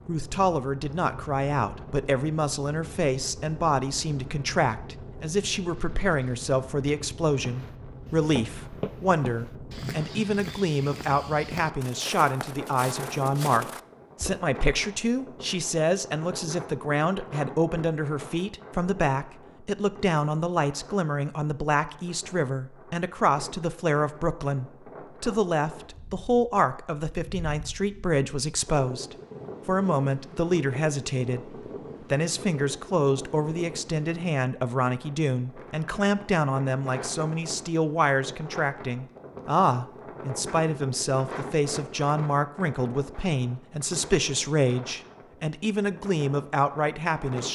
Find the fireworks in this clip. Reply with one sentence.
You can't hear the fireworks here.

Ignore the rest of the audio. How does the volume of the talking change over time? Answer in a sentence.
The volume of the talking stays about the same.